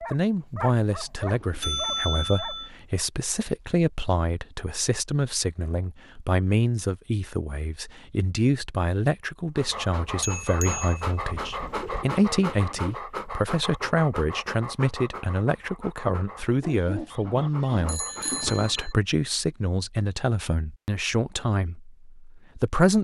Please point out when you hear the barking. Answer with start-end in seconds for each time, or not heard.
0.0-3.0, 9.6-18.9.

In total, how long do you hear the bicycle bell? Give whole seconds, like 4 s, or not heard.
4 s.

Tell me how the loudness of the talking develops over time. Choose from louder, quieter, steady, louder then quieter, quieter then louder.
steady.